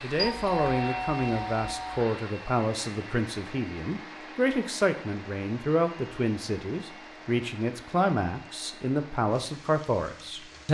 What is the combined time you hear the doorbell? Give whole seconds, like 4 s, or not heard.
2 s.